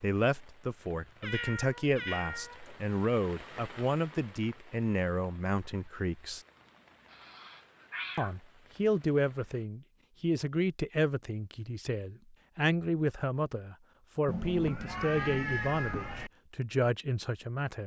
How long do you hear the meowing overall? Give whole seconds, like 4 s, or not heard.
5 s.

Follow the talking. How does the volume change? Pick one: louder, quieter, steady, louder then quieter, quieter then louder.
steady.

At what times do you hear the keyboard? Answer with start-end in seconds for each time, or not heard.
not heard.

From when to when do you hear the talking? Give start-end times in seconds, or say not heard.
0.0-6.4, 8.2-17.8.